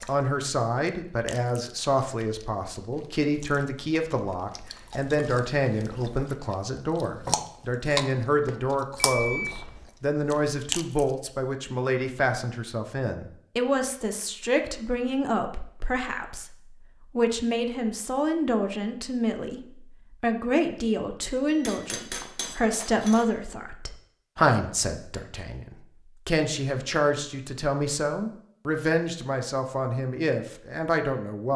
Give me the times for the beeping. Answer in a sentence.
You can hear the beeping from 8.9 to 9.9 s and from 21.4 to 23.1 s.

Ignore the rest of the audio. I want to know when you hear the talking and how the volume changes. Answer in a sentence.
The talking can be heard from 0.1 to 31.5 s, at a steady volume.